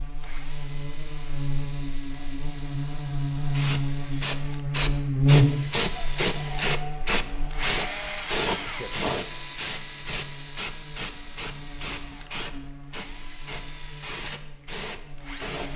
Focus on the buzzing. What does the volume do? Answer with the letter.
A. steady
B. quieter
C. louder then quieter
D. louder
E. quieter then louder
C.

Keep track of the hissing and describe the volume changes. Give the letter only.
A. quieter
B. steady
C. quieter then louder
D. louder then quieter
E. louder
A.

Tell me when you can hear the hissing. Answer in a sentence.
The hissing can be heard from 3.5 to 15.7 s.